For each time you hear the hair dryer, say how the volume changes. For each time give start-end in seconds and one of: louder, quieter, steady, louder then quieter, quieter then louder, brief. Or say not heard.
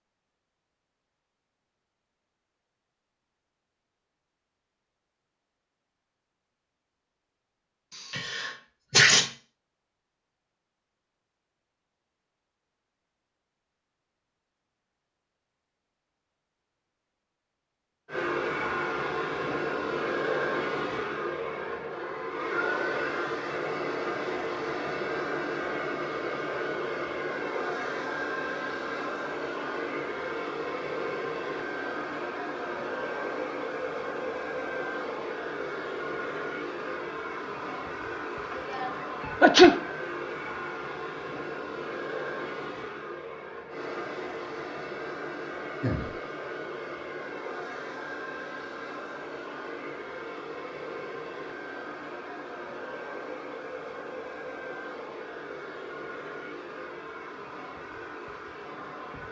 18.1-59.2 quieter.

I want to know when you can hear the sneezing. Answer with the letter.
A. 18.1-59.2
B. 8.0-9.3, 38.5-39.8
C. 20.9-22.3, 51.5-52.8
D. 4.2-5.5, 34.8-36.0
B.